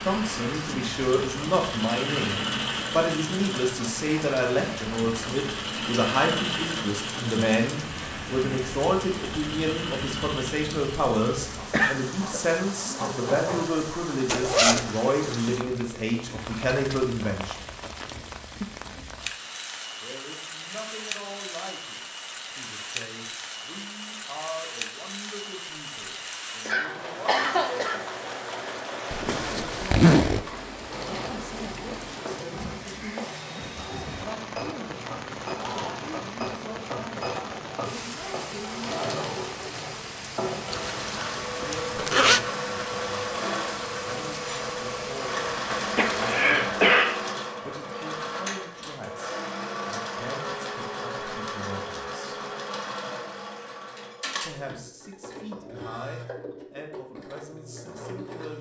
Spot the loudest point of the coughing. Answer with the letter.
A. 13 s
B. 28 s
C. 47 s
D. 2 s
C.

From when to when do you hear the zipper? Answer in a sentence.
You can hear the zipper from 14.2 to 14.9 s, from 29.1 to 30.4 s and from 40.7 to 42.4 s.